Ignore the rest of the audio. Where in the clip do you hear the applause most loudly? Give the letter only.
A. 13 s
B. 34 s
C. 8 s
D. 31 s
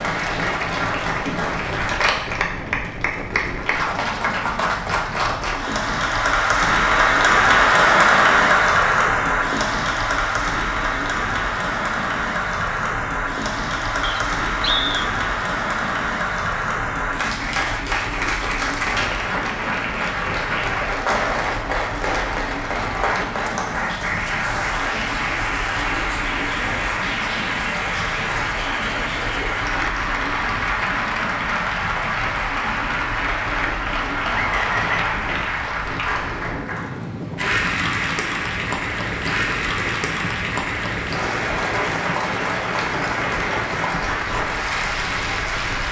C.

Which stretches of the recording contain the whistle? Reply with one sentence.
You can hear the whistle from 14.0 to 15.1 s and from 34.3 to 35.1 s.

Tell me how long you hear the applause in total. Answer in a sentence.
The applause can be heard for 46 seconds in total.